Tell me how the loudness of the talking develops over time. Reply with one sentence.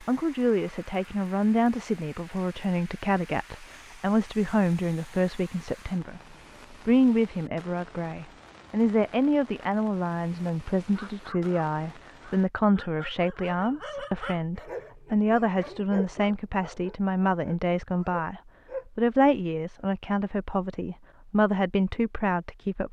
The loudness of the talking stays about the same.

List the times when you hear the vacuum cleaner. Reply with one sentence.
The vacuum cleaner can't be heard in this clip.